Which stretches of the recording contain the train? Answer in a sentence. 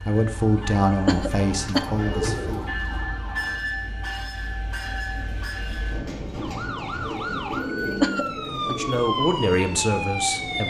You can hear the train from 0.0 to 10.6 s.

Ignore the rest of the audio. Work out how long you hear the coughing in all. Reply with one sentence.
You can hear the coughing for 3 seconds altogether.